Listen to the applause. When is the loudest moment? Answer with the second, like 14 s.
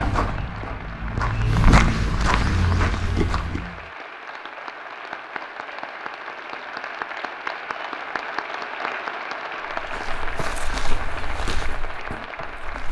9 s.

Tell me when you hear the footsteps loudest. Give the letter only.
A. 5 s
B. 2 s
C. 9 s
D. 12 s
B.